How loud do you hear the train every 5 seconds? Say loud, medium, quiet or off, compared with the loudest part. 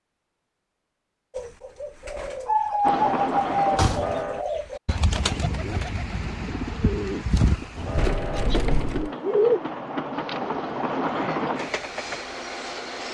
loud, medium, loud.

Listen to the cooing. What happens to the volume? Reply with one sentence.
The volume of the cooing goes down.